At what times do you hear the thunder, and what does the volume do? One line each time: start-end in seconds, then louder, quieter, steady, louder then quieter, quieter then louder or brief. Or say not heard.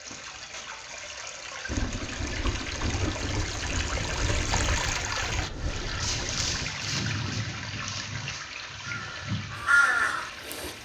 1.6-6.7 steady.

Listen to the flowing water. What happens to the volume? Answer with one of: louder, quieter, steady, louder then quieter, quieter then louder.
louder then quieter.